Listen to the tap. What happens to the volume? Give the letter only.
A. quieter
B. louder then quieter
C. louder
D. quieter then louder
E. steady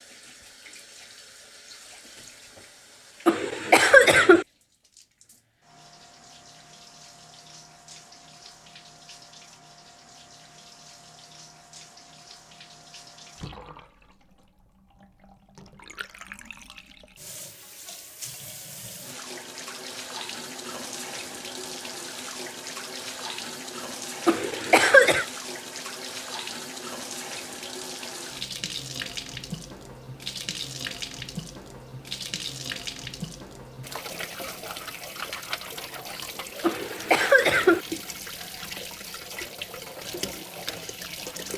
C.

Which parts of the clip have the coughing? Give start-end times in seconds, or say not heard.
3.2-4.5, 24.2-25.2, 36.6-37.8.